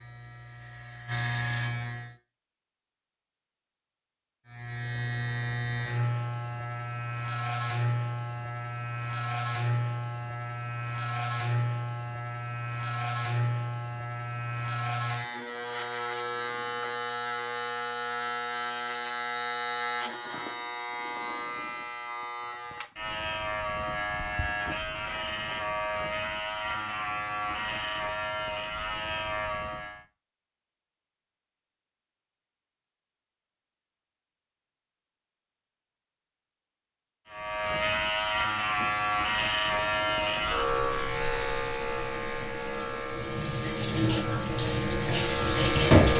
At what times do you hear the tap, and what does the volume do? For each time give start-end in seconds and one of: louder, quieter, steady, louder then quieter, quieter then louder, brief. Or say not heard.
38.6-46.1 louder.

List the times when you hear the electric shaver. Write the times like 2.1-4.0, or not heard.
0.0-2.1, 4.5-30.1, 37.3-46.1.